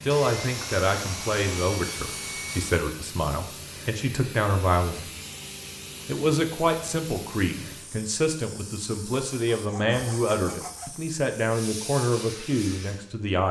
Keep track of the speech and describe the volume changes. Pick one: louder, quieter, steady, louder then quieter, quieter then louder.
steady.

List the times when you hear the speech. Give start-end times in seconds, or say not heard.
0.0-5.1, 6.0-13.4.